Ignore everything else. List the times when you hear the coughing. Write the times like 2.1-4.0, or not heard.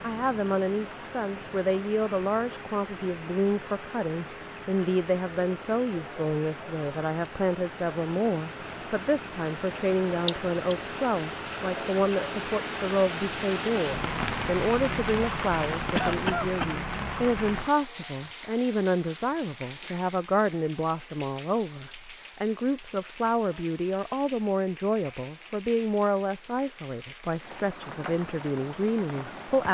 10.2-10.8, 15.9-16.8.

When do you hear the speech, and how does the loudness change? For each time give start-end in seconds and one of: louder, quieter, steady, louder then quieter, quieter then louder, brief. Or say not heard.
0.0-29.6 steady.